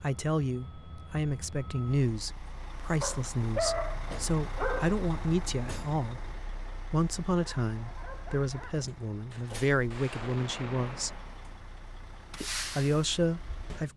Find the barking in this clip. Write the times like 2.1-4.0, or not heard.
3.0-5.0, 7.7-8.9.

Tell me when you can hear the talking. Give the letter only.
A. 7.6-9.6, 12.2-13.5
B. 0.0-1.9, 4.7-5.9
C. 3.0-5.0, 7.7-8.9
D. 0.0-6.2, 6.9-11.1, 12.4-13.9
D.